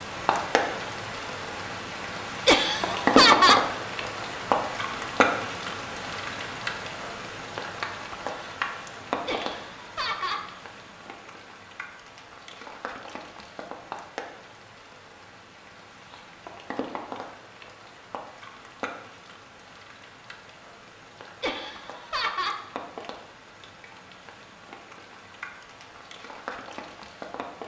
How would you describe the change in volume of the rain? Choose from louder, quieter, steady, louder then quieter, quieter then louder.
quieter.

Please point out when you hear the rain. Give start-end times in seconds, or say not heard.
0.0-27.6.